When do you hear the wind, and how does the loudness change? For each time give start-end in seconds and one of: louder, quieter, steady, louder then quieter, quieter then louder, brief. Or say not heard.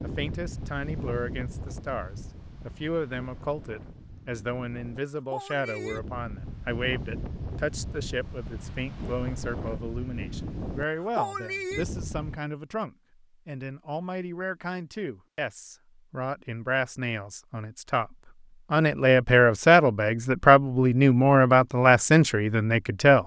0.0-12.4 quieter then louder.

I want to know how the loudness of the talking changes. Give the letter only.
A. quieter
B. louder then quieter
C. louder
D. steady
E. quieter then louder
C.